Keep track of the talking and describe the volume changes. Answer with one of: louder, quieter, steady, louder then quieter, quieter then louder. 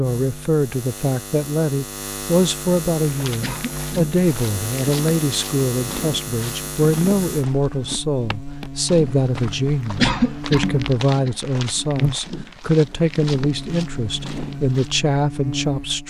steady.